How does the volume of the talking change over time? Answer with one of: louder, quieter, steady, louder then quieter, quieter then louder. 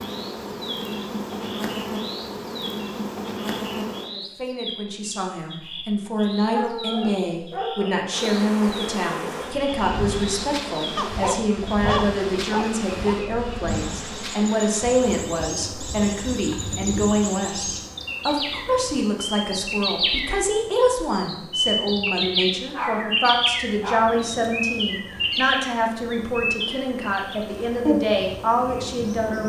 steady.